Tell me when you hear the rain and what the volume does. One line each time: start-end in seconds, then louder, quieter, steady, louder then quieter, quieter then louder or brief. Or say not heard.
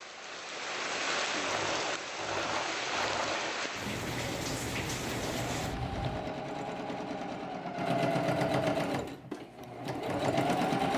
0.0-6.3 steady.